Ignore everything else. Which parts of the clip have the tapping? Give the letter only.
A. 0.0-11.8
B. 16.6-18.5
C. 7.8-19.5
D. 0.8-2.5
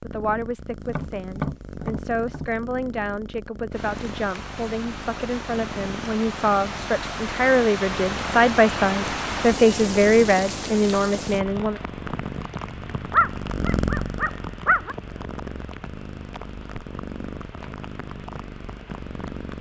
D.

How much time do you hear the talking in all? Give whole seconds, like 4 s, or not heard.
12 s.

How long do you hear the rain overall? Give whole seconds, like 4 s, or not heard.
16 s.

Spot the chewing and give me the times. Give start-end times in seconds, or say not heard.
not heard.